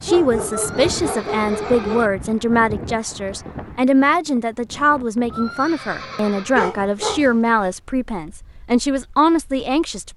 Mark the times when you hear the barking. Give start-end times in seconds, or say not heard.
0.1-2.0, 6.5-7.7.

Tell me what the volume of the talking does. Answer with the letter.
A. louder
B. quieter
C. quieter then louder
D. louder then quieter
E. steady
E.